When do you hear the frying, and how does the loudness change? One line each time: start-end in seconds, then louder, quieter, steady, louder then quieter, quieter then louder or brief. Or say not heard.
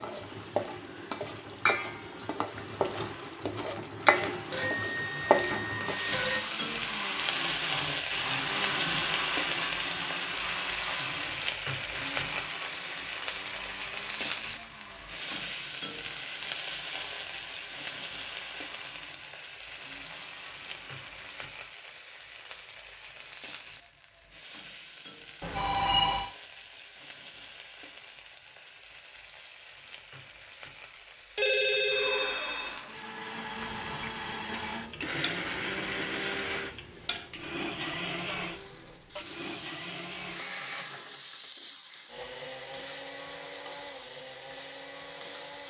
0.0-45.6 quieter.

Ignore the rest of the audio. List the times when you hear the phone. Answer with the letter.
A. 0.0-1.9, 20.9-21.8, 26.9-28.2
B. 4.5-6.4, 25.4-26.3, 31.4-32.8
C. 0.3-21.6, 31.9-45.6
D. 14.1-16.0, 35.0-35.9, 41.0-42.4
B.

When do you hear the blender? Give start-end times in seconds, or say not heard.
0.3-21.6, 31.9-45.6.